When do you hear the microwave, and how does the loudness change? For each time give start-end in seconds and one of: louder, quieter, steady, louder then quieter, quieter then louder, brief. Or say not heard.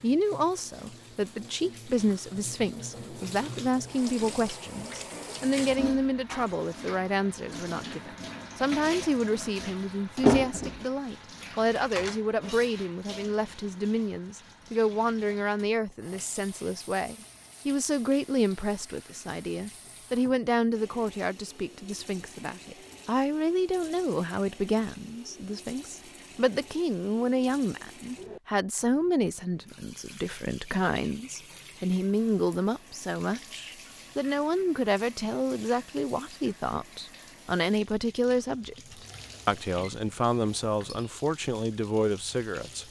not heard.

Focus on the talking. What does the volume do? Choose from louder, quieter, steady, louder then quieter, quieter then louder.
steady.